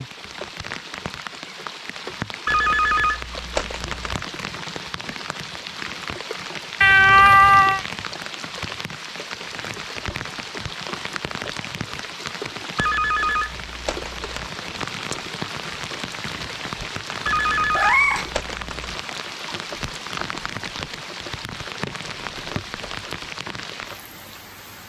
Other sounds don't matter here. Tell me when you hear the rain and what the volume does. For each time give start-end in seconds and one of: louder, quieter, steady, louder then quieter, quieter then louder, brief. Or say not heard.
0.0-24.8 steady.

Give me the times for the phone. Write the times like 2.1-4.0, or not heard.
2.5-4.2, 12.8-14.5, 17.2-18.9.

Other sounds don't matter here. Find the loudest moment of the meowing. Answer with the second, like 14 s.
7 s.